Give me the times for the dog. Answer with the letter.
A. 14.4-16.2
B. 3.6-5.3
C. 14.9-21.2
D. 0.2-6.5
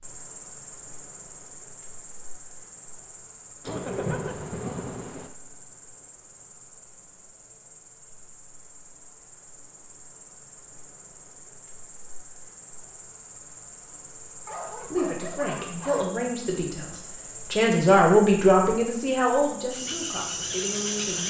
A.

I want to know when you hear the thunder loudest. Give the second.
4 s.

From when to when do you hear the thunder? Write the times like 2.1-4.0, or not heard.
3.6-5.3.